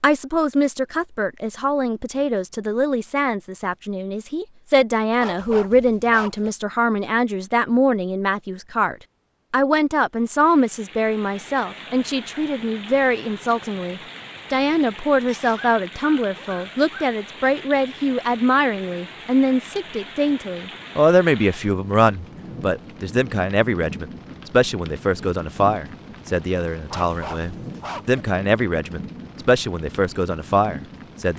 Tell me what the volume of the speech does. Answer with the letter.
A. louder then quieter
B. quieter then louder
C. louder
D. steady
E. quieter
D.